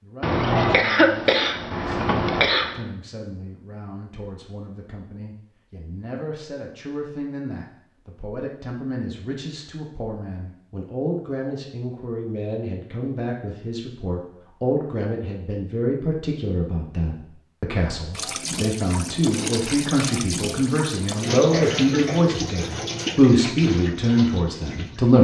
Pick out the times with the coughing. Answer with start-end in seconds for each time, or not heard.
0.2-2.8, 21.5-22.2.